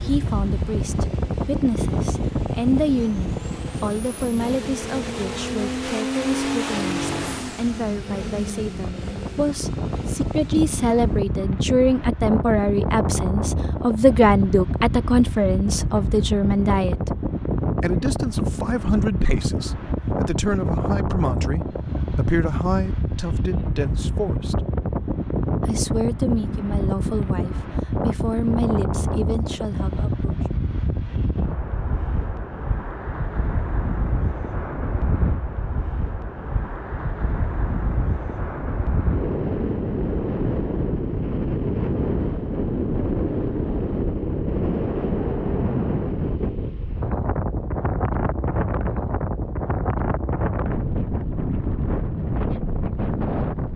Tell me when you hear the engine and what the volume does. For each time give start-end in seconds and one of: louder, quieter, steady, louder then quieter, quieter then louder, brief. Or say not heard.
0.0-11.3 louder then quieter.